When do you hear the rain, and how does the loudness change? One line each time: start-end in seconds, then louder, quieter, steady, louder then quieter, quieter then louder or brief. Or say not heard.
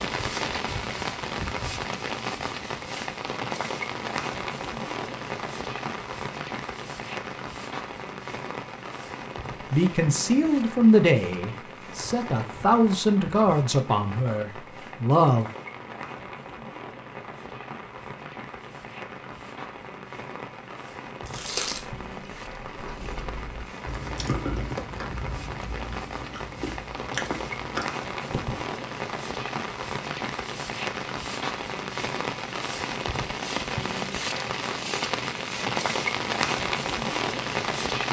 0.0-38.0 quieter then louder.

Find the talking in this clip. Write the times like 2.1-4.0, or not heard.
9.7-15.5.